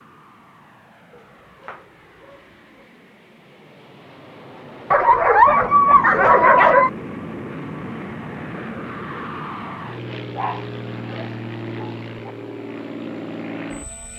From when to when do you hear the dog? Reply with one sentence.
The dog can be heard from 1.1 to 2.5 s, from 4.9 to 6.9 s and from 10.3 to 12.3 s.